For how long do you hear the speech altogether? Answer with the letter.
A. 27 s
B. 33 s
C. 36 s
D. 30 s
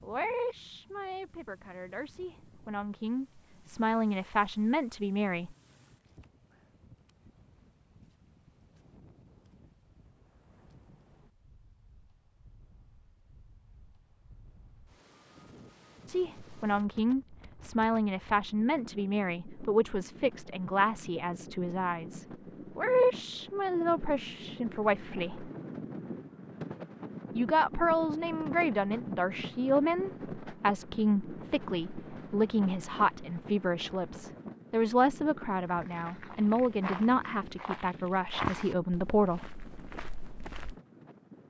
A.